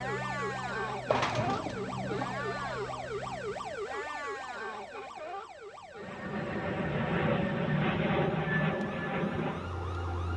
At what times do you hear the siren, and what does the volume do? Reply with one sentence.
The siren can be heard from 0.0 to 10.3 s, getting quieter.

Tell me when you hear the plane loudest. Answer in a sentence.
The volume of the plane peaks at 8 seconds.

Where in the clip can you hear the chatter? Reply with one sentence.
The chatter can't be heard in this clip.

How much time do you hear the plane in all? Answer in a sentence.
You can hear the plane for 8 seconds altogether.